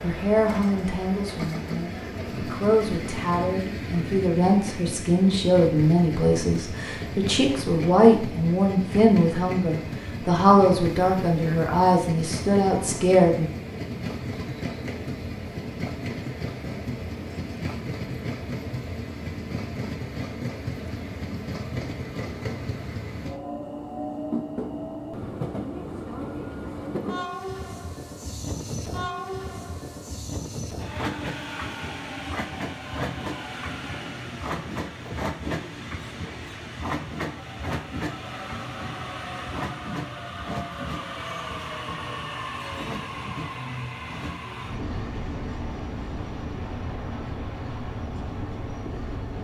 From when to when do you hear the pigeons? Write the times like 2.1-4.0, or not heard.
not heard.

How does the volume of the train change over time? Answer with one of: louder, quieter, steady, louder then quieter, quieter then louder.
steady.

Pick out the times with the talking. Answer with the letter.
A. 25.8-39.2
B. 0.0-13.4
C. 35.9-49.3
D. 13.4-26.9
B.